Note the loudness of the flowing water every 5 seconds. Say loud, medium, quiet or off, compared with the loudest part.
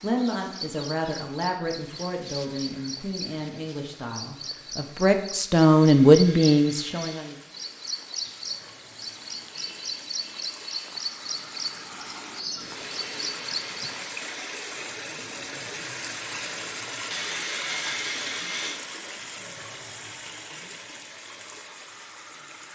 quiet, quiet, loud, loud, medium.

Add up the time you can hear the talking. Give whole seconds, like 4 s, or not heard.
7 s.